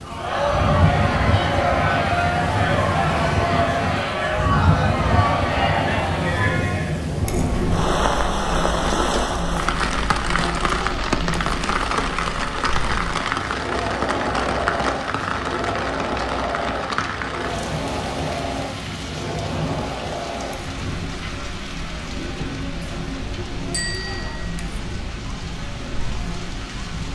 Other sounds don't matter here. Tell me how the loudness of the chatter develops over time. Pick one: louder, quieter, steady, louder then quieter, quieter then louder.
quieter.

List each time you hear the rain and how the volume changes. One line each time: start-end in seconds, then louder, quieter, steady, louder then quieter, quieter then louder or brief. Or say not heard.
0.0-27.0 quieter.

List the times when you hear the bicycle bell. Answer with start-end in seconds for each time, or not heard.
23.7-24.6.